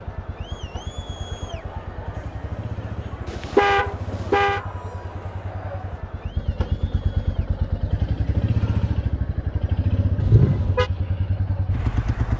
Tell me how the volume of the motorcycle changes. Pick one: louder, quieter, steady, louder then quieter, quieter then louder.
louder.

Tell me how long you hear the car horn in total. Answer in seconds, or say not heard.
2 s.